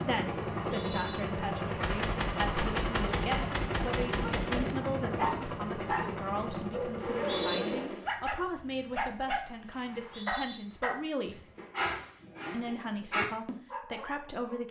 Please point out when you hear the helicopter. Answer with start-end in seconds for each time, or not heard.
0.0-8.1.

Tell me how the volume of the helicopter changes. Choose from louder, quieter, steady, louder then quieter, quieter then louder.
steady.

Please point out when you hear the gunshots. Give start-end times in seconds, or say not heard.
1.8-4.8.